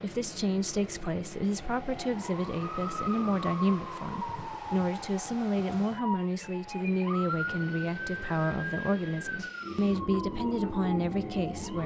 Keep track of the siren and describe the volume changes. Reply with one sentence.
The loudness of the siren stays about the same.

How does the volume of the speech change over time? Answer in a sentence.
The volume of the speech stays about the same.